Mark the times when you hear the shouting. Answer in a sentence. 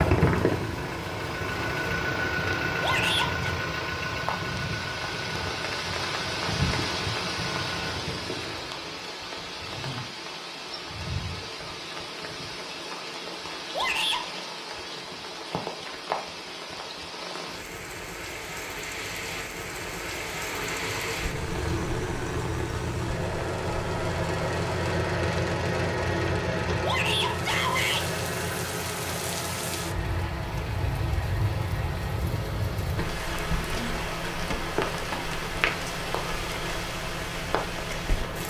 The shouting can be heard from 2.8 to 3.5 s, from 13.7 to 14.2 s and from 26.8 to 28.1 s.